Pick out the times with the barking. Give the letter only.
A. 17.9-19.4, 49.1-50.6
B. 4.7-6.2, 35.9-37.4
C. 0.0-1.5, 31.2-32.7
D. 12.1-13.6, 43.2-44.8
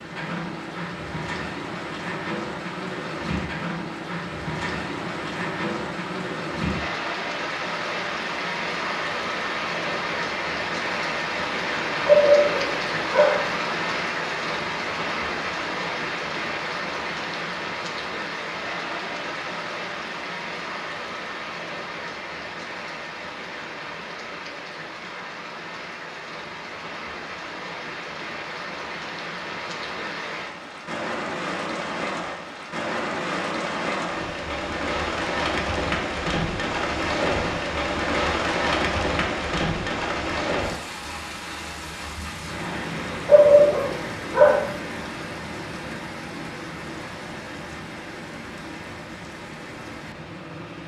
D.